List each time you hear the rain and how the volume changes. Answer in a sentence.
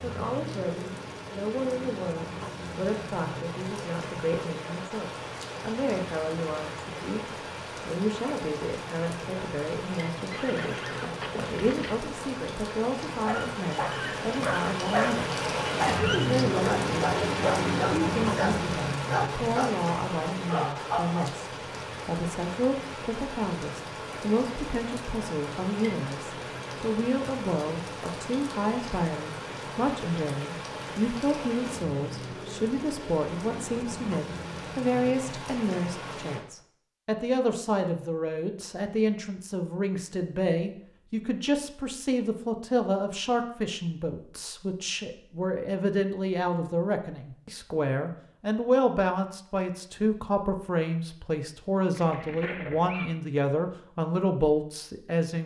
You can hear the rain from 0.0 to 36.5 s, getting louder then quieter.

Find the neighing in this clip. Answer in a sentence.
The neighing can be heard from 10.3 to 12.1 s and from 51.9 to 53.1 s.